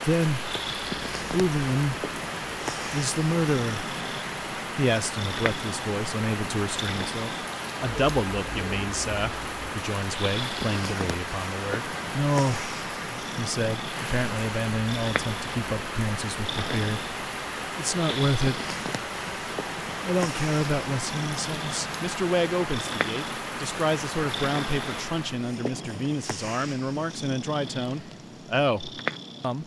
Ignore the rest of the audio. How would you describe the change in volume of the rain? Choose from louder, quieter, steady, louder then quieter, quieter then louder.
steady.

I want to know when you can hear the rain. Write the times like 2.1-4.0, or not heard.
0.0-25.5.